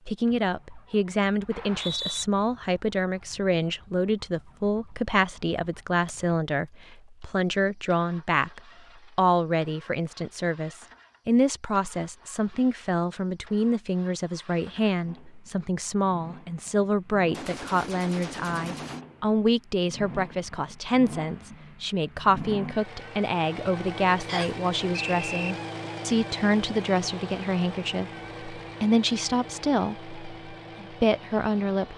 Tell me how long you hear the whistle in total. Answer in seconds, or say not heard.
2 s.